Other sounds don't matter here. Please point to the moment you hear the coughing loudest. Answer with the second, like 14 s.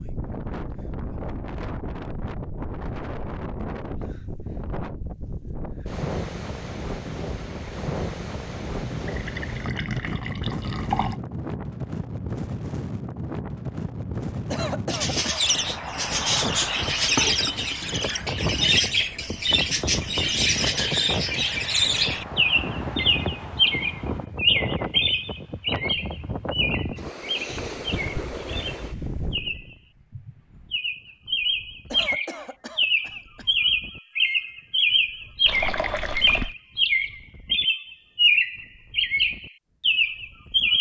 15 s.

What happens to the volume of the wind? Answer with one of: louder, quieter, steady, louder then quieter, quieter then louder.
quieter.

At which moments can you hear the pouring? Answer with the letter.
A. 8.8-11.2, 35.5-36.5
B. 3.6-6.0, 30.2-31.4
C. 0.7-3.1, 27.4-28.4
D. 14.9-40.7
A.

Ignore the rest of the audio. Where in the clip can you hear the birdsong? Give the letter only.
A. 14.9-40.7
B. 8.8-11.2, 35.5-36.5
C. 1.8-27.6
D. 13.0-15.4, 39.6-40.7
A.